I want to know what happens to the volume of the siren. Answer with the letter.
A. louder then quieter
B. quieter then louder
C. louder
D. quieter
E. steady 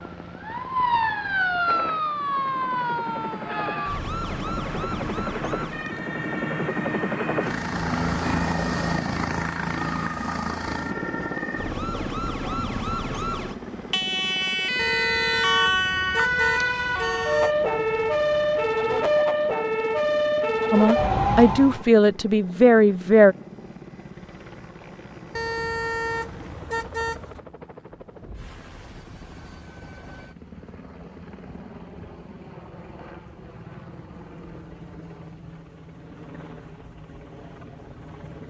B.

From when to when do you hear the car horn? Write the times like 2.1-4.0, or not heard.
14.8-17.6, 25.4-27.4.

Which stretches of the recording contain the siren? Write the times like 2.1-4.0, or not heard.
0.0-21.9.